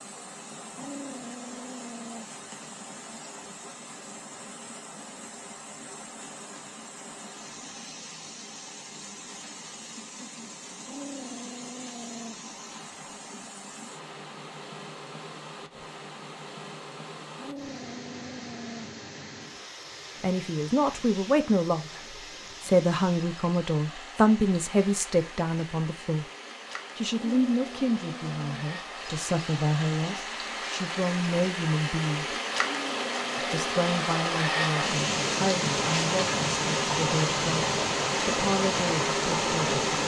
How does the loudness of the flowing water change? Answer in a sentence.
The loudness of the flowing water goes up.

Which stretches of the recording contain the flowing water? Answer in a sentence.
You can hear the flowing water from 0.0 to 40.0 s.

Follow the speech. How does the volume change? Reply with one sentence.
The loudness of the speech goes down.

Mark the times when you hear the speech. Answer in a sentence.
The speech can be heard from 20.2 to 26.2 s, from 26.9 to 32.4 s and from 33.4 to 39.8 s.